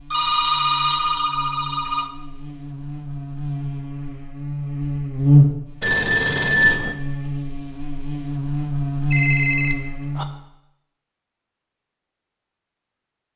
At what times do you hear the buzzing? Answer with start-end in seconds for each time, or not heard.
0.0-10.3.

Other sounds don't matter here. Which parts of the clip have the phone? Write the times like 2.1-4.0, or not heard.
0.1-2.1, 5.8-7.0, 9.1-10.2.